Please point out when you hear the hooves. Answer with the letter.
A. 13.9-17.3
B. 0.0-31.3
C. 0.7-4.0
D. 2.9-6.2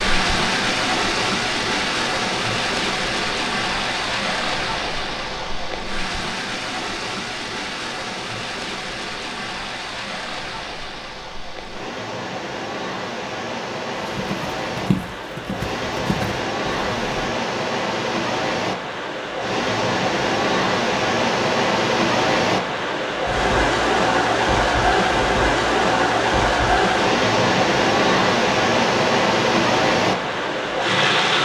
A.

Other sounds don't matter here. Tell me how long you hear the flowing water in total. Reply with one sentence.
The flowing water can be heard for 31 seconds in total.